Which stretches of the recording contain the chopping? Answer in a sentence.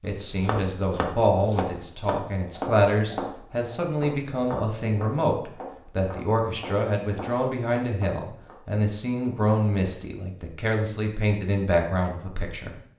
You can hear the chopping from 0.1 to 8.6 s.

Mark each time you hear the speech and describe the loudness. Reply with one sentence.
The speech can be heard from 0.0 to 12.8 s, at a steady volume.